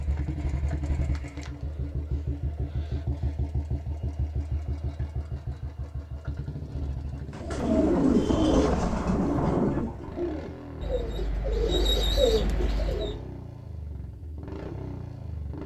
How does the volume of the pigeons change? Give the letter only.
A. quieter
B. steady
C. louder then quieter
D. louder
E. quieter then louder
E.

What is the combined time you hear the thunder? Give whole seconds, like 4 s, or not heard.
2 s.